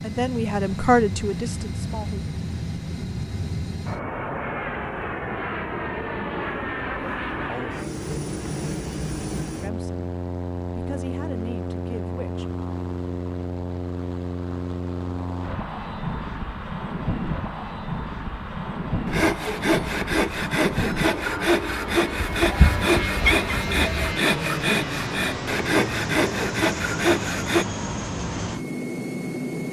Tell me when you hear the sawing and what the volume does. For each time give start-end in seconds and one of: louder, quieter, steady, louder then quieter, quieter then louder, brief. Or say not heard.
19.1-27.6 steady.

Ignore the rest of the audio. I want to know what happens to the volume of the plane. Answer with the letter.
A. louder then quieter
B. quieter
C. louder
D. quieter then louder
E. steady
E.